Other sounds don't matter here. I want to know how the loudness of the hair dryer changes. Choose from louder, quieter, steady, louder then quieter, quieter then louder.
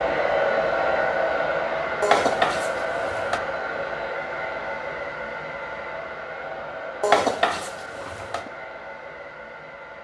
quieter.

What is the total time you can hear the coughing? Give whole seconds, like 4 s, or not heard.
3 s.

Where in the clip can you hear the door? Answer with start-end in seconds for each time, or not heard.
not heard.